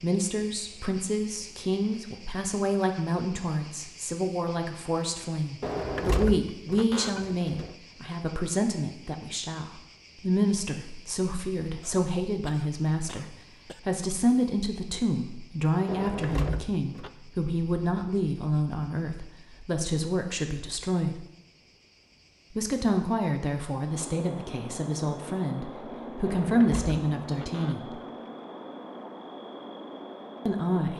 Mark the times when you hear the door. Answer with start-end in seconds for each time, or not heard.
5.6-7.8, 15.8-17.1, 26.2-27.8.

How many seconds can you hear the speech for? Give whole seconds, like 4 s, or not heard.
27 s.